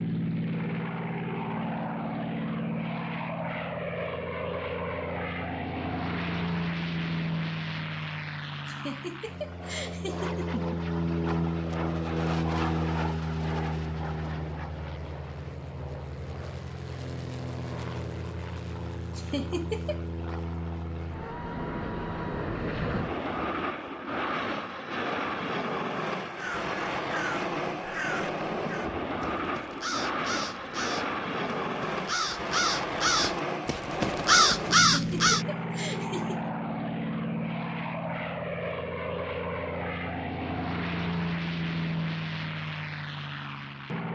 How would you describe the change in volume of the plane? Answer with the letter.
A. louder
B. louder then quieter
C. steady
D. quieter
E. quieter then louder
C.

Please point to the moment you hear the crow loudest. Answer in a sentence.
The loudest moment of the crow is at 34 seconds.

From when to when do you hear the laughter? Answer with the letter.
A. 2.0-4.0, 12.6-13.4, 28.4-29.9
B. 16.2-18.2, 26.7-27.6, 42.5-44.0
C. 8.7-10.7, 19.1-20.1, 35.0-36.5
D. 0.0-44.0
C.